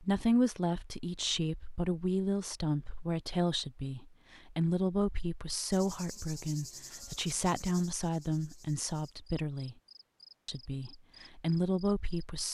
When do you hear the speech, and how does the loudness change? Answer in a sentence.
The speech can be heard from 0.0 to 9.8 s, at a steady volume; and briefly from 10.4 to 12.4 s.